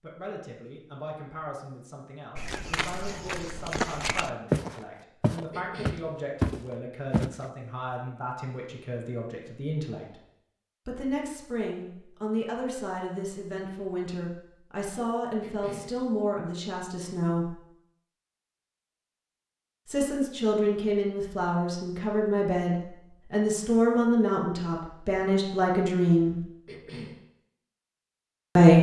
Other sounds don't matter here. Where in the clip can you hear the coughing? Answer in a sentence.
You can hear the coughing from 5.5 to 6.0 s, from 15.4 to 15.9 s and from 26.6 to 27.2 s.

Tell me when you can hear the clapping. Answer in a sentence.
You can't hear the clapping here.